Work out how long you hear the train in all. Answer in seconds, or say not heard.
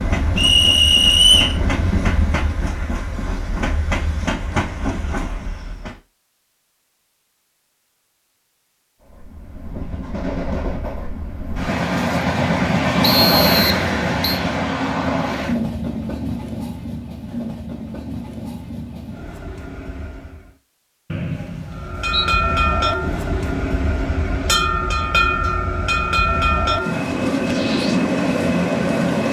25 s.